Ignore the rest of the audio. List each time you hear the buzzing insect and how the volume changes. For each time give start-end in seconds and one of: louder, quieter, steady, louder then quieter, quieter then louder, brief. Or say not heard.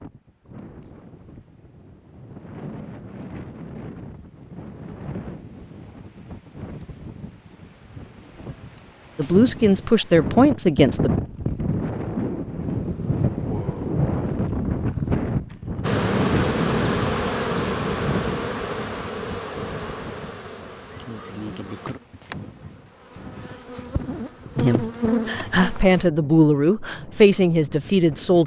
15.8-26.1 quieter then louder.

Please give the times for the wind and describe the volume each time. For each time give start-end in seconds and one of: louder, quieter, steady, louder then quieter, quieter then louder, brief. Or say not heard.
0.0-28.4 louder then quieter.